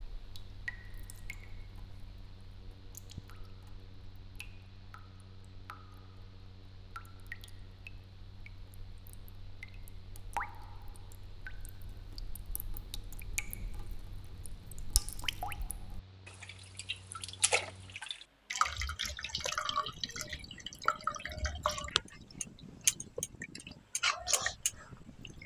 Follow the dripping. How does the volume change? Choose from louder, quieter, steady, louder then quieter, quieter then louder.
louder.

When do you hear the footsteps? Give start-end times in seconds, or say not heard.
not heard.